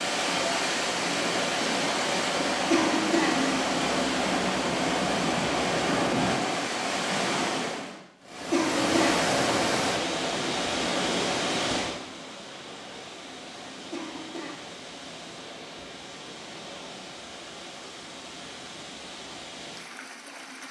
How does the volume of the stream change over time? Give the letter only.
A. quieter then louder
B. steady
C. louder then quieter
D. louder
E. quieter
E.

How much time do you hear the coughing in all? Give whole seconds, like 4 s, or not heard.
2 s.